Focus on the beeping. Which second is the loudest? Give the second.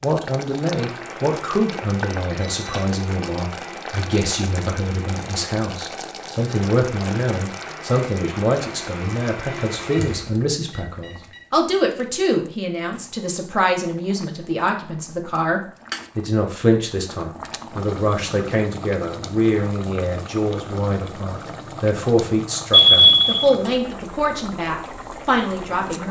23 s.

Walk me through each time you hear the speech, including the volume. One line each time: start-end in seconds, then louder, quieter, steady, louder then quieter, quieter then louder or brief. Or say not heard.
0.0-26.0 steady.